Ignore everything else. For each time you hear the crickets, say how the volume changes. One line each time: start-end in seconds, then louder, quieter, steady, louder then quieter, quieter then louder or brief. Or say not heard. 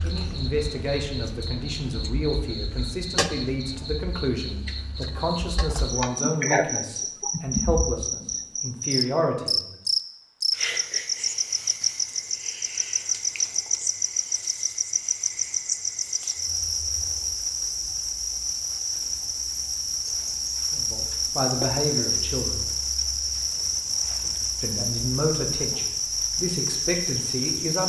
0.0-27.8 louder.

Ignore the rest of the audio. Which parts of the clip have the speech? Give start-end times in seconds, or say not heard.
0.0-9.8, 20.7-22.6, 24.6-27.8.